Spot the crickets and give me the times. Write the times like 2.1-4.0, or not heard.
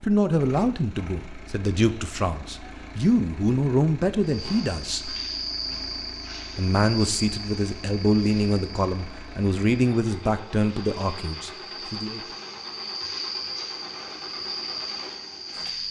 4.2-15.8.